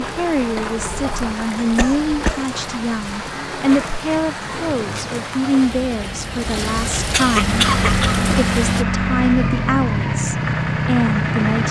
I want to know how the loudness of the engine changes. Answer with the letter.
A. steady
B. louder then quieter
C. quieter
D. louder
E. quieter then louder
A.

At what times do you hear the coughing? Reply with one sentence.
The coughing can be heard from 1.8 to 2.5 s and from 7.1 to 8.2 s.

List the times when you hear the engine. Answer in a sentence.
You can hear the engine from 7.3 to 11.6 s.